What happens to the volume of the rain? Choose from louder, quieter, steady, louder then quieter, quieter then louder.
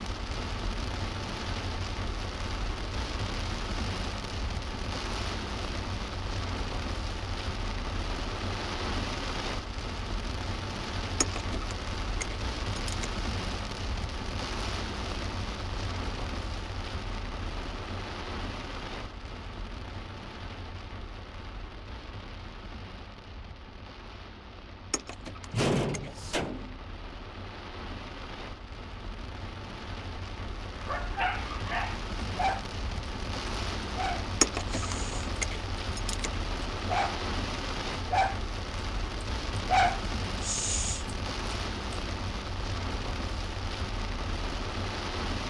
quieter then louder.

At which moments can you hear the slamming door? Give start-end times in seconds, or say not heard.
25.5-26.8.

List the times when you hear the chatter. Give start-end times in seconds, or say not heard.
not heard.